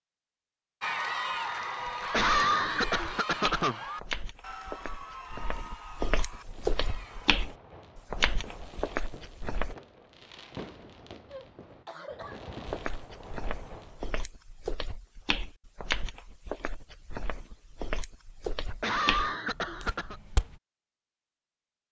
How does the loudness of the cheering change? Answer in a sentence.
The loudness of the cheering goes down.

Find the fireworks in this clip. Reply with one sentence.
The fireworks can be heard from 6.2 to 14.2 s.